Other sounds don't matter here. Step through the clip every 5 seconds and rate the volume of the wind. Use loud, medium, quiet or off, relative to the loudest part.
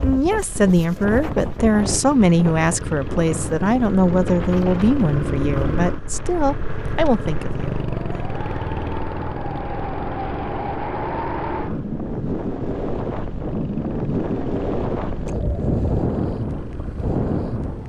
medium, medium, loud, loud.